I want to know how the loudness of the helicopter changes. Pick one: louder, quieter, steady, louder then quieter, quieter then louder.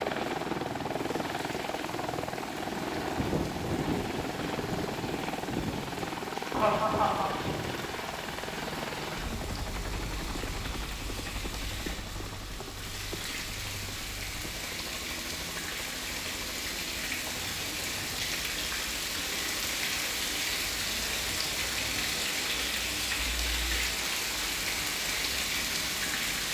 quieter.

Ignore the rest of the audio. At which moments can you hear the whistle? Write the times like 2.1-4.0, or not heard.
not heard.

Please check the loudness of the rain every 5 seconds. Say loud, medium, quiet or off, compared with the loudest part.
quiet, quiet, medium, loud, loud, loud.